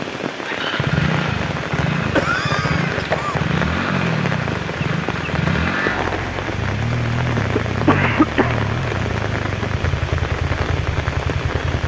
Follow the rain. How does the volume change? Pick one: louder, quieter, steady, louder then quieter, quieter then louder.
steady.